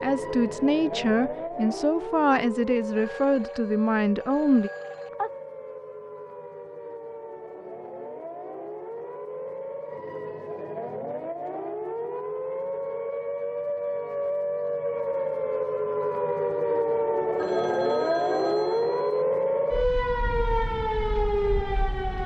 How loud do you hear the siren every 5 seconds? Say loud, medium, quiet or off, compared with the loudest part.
medium, quiet, medium, loud, loud.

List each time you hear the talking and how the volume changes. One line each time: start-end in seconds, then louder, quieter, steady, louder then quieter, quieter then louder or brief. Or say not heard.
0.0-4.7 steady.